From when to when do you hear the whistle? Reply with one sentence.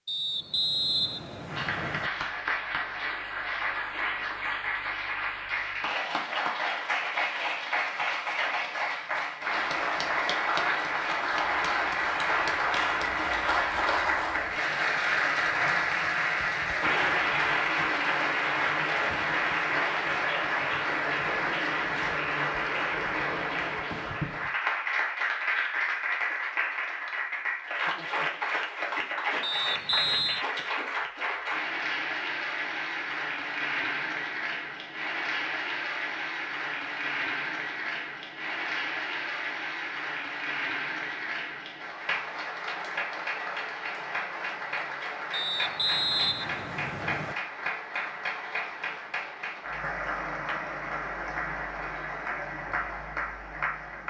You can hear the whistle from 0.1 to 2.1 s, from 29.4 to 30.4 s and from 45.3 to 47.4 s.